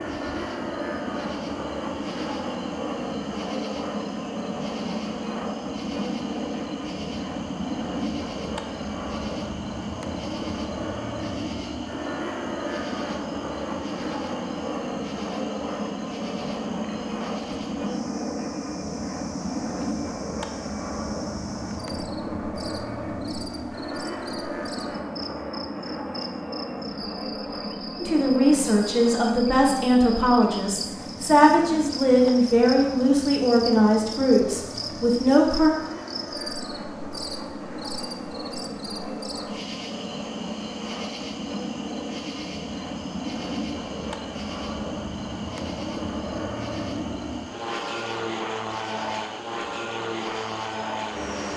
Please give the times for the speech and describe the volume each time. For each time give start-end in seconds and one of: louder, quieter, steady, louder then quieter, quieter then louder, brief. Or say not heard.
28.0-35.7 steady.